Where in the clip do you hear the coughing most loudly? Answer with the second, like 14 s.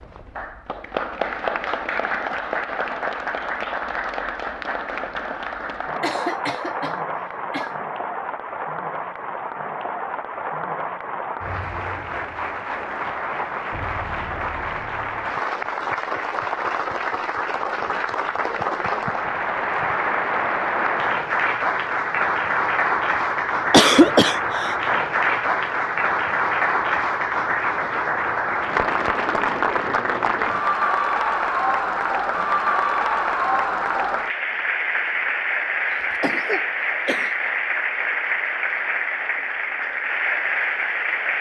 24 s.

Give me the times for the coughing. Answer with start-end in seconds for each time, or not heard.
6.0-7.8, 23.7-24.8, 36.0-37.3.